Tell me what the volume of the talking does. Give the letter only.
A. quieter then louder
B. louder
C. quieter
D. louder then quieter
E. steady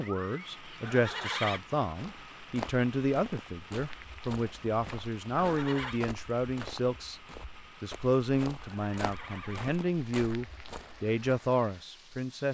E.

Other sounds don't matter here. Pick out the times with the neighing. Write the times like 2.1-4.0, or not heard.
0.8-1.6, 5.4-6.0, 8.6-9.8.